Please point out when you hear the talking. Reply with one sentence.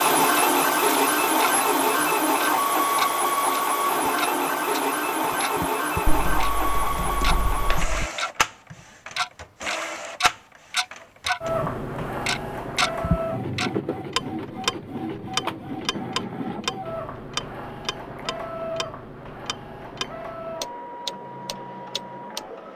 The talking can't be heard in this clip.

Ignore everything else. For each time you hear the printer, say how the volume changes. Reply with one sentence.
The printer can be heard from 0.0 to 22.7 s, getting quieter.